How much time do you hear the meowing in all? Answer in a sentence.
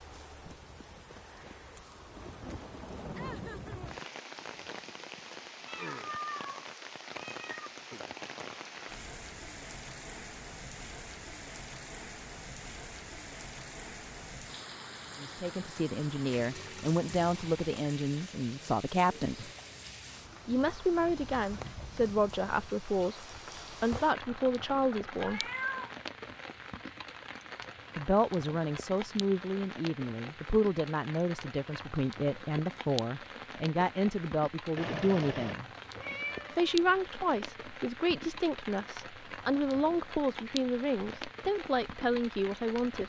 The meowing can be heard for 6 seconds in total.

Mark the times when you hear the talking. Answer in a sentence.
You can hear the talking from 15.2 to 19.5 s, from 20.4 to 23.2 s, from 23.8 to 25.4 s, from 27.9 to 35.6 s and from 36.5 to 43.0 s.